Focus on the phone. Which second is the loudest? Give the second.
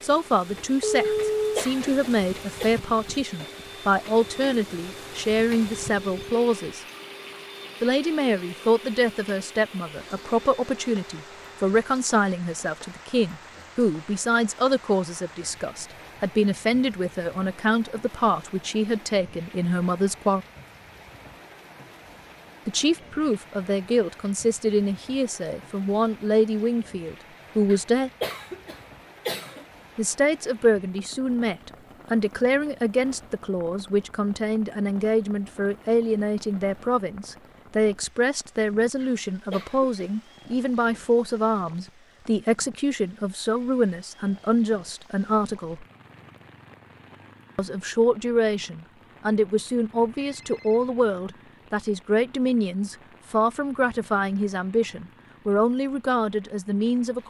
1 s.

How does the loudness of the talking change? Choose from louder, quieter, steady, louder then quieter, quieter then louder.
steady.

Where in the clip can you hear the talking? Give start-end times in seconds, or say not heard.
0.0-6.8, 7.8-20.4, 22.6-28.1, 29.9-45.9, 47.5-57.2.